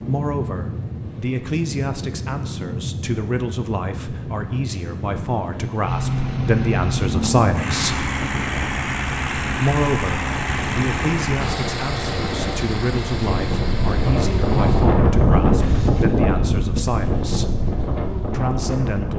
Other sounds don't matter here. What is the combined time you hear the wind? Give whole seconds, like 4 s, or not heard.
19 s.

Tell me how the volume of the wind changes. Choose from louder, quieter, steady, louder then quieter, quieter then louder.
louder.